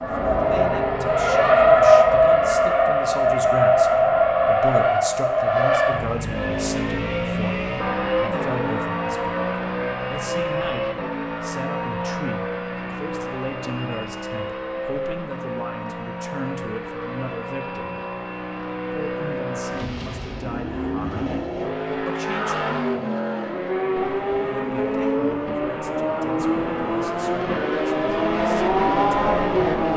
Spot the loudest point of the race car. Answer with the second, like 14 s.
2 s.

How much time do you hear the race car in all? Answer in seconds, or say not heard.
30 s.